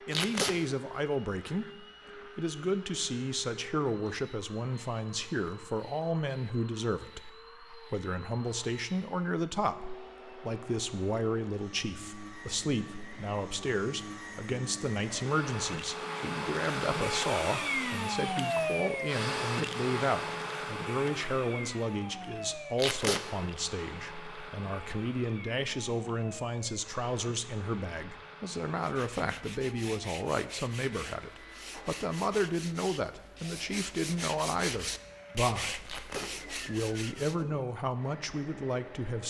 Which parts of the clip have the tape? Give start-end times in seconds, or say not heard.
0.1-0.6, 22.8-23.2, 35.9-36.3.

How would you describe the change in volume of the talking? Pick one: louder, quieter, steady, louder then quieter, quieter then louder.
steady.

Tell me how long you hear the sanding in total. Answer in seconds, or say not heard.
9 s.